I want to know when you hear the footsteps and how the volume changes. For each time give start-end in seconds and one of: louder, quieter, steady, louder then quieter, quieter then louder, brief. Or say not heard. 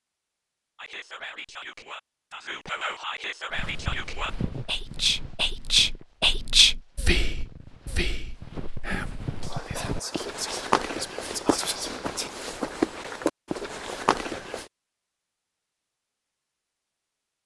3.5-14.7 quieter then louder.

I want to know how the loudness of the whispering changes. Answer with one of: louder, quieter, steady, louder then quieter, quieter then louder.
louder then quieter.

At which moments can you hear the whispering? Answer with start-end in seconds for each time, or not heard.
0.8-12.3.